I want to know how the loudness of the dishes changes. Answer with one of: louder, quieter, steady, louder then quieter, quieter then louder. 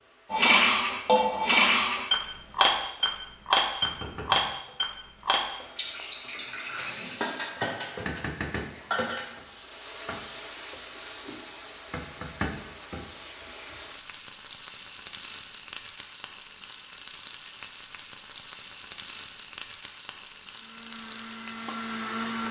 quieter.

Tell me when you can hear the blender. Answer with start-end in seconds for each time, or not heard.
20.5-22.4.